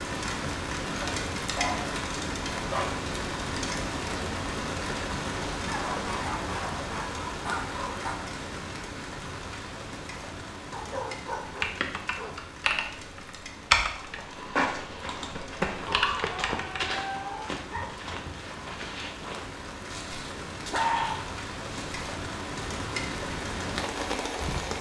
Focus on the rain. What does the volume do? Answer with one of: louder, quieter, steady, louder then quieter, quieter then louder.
quieter then louder.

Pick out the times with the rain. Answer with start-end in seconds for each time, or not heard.
0.0-24.7.